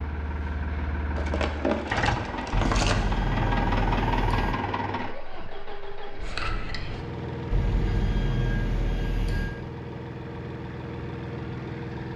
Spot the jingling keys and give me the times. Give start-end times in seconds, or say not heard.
1.1-3.0, 6.2-7.0.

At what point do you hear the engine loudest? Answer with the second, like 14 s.
4 s.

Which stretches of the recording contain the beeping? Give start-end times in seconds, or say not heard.
2.5-4.5, 7.5-9.5.